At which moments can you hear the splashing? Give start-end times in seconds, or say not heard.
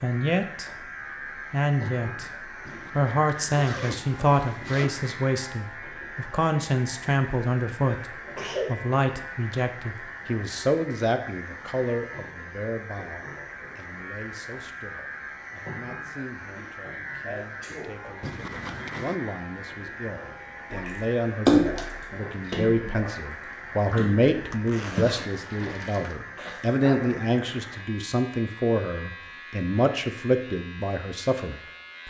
20.7-26.1.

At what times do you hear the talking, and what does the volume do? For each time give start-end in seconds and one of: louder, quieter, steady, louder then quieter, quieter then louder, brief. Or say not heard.
0.0-0.7 brief
1.5-32.0 quieter then louder.